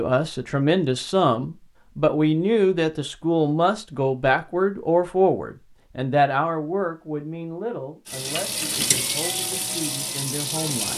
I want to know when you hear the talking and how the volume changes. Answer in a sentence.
The talking can be heard from 0.0 to 10.9 s, getting quieter.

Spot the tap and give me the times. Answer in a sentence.
The tap can be heard from 8.1 to 10.9 s.